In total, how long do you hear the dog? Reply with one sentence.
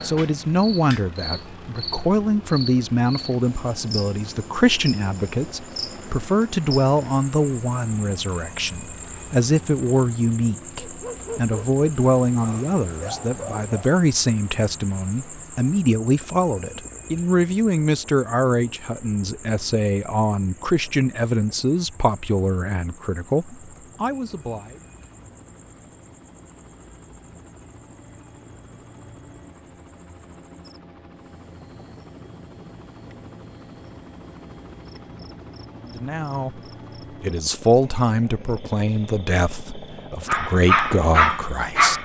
You can hear the dog for 5 seconds altogether.